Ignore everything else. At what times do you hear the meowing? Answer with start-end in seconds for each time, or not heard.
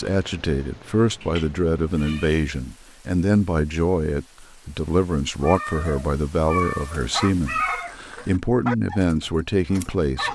1.2-2.4, 5.4-8.0.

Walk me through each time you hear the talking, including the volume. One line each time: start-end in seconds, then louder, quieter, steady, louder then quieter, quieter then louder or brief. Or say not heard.
0.0-10.3 steady.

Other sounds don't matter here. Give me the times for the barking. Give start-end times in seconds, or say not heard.
7.0-10.3.